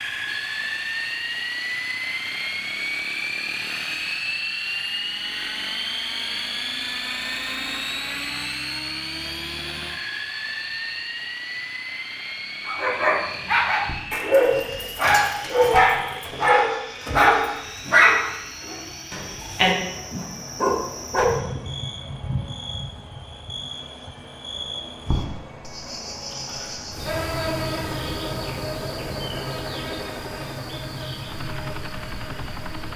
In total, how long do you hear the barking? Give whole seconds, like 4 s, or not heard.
9 s.